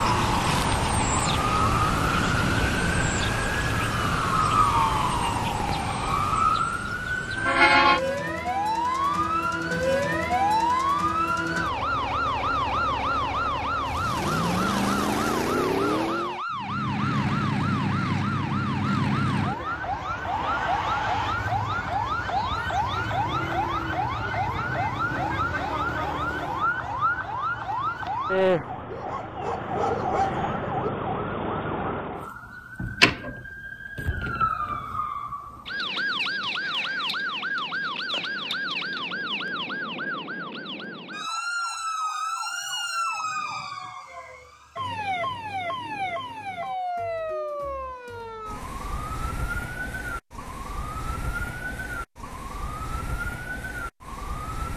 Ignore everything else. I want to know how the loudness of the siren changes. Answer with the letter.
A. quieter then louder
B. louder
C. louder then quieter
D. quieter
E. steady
D.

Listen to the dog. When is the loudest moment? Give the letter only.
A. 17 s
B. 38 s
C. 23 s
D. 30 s
D.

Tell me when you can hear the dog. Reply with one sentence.
The dog can be heard from 28.4 to 30.9 s.